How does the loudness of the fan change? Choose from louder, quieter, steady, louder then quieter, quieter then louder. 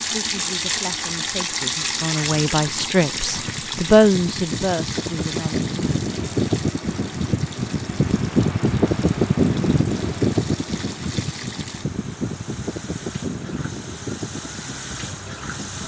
louder then quieter.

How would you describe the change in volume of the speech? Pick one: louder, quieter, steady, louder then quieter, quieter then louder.
louder then quieter.